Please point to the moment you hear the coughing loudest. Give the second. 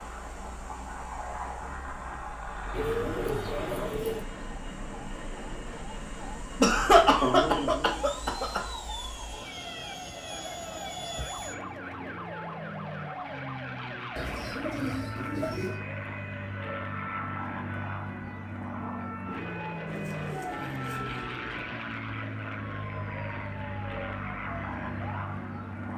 7 s.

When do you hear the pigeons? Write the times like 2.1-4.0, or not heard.
2.7-4.2, 14.2-15.8, 19.9-21.8.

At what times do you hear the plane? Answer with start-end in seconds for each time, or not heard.
0.0-25.9.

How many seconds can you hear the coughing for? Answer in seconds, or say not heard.
2 s.